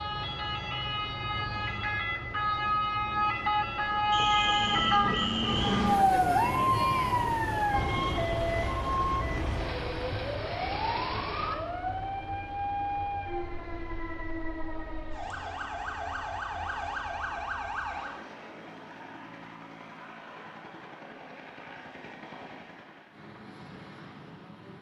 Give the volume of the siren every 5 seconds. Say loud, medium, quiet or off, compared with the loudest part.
loud, loud, medium, medium, off.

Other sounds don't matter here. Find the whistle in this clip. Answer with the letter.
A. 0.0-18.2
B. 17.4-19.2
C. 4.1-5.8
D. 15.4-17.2
C.